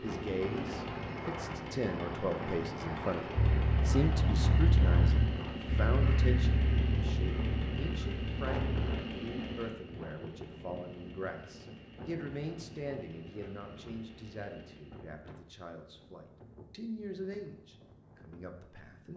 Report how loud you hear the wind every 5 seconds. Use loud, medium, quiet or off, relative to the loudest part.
loud, loud, medium, quiet.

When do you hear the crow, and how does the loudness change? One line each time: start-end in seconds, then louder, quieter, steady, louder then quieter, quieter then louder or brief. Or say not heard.
3.4-8.9 quieter.